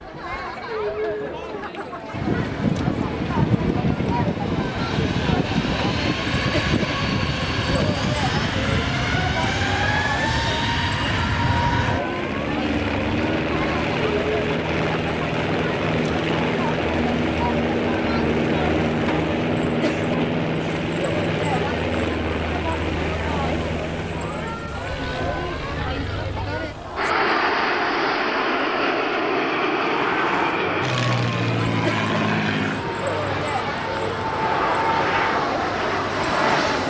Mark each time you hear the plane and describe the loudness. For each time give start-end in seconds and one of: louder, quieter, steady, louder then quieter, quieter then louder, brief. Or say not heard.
2.1-36.8 steady.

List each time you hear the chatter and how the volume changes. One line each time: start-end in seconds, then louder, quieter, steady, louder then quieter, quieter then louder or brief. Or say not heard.
0.0-36.8 steady.